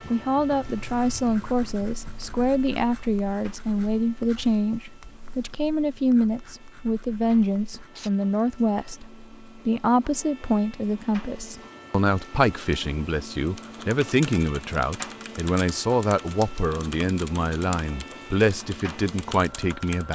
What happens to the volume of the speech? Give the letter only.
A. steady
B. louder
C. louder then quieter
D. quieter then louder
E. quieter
A.